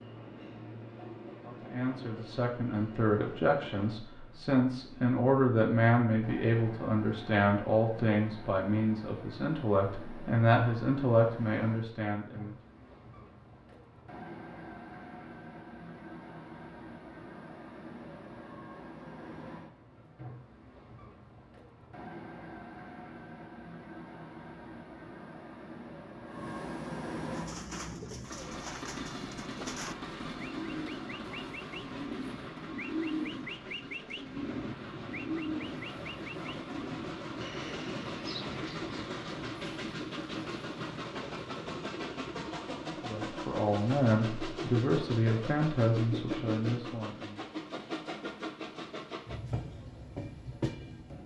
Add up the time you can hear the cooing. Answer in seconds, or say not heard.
12 s.